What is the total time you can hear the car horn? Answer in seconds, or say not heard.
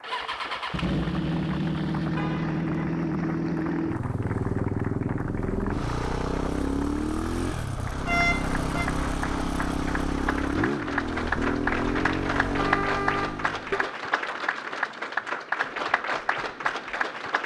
3 s.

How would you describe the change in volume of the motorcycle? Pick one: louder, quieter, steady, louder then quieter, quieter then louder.
steady.